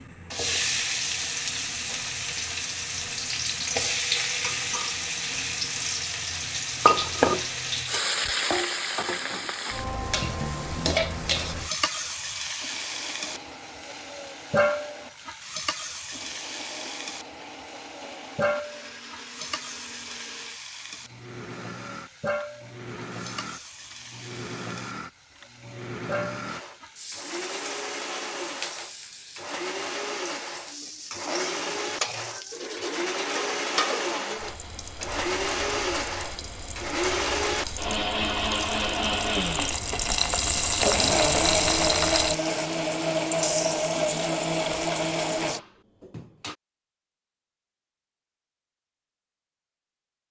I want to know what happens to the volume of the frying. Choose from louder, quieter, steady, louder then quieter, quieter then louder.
quieter then louder.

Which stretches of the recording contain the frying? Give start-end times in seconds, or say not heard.
0.0-45.6.